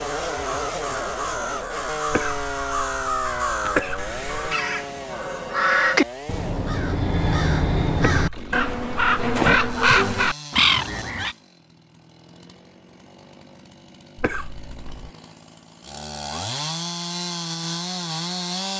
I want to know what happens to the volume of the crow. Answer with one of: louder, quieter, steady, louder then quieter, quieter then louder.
louder.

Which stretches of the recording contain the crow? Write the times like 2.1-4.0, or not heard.
0.0-11.3.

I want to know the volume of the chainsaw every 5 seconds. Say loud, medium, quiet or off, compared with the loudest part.
loud, medium, quiet, loud.